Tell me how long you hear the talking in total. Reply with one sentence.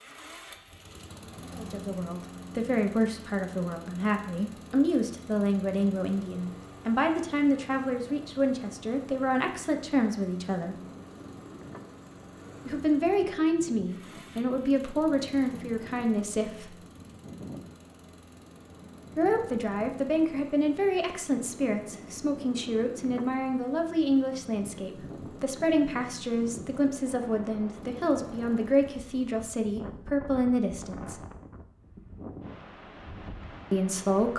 You can hear the talking for 26 seconds altogether.